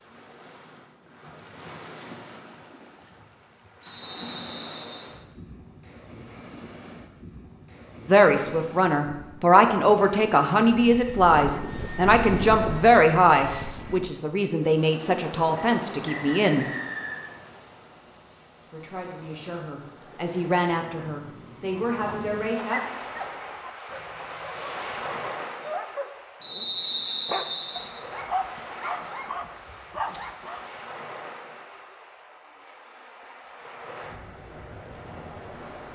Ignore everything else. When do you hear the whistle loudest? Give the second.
27 s.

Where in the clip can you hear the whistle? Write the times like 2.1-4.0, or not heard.
3.8-5.1, 15.6-17.3, 26.4-27.9.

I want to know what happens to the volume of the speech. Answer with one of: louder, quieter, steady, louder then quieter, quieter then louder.
quieter.